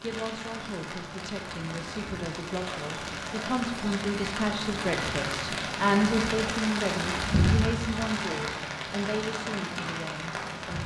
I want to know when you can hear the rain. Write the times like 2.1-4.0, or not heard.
0.0-10.8.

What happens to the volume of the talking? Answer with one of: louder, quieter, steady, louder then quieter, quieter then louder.
louder then quieter.